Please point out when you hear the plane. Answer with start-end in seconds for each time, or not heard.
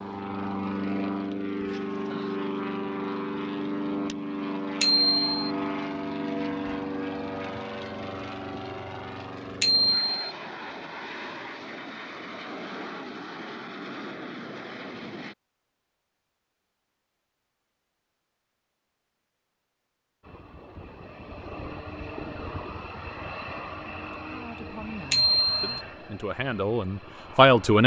0.0-15.3, 20.2-27.8.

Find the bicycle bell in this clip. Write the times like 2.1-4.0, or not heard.
4.8-5.5, 9.6-10.1, 25.1-25.8.